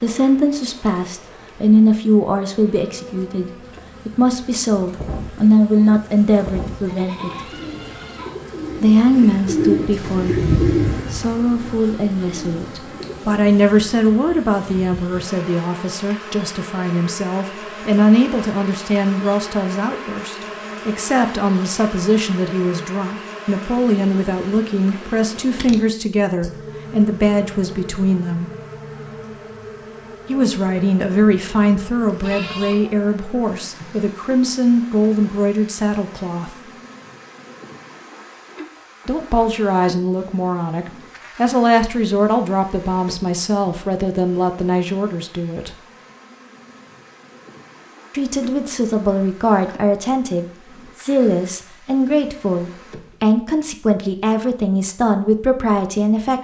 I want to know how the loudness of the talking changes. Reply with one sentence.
The volume of the talking stays about the same.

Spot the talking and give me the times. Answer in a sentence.
You can hear the talking from 0.0 to 7.5 s, from 8.8 to 28.5 s, from 30.2 to 36.5 s, from 39.0 to 45.8 s and from 48.1 to 56.3 s.